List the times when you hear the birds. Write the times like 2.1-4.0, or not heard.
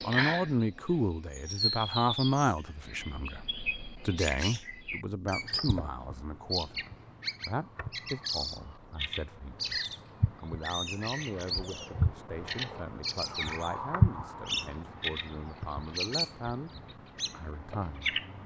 0.0-0.7, 1.3-18.4.